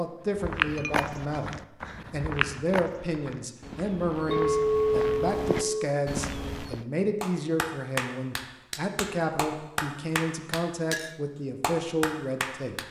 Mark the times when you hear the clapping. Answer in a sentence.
The clapping can be heard from 7.2 to 11.0 s and from 11.6 to 12.8 s.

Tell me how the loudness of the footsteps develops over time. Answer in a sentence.
The volume of the footsteps goes down, then up.